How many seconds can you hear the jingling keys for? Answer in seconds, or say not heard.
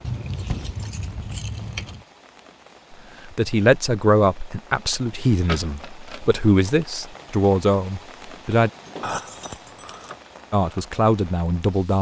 4 s.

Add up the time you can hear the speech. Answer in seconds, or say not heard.
7 s.